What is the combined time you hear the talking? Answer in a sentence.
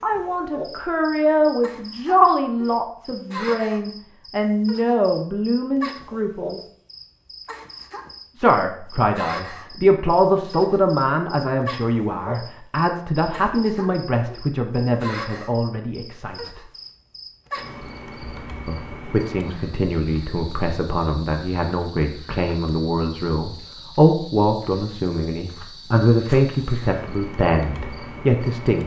You can hear the talking for 25 seconds altogether.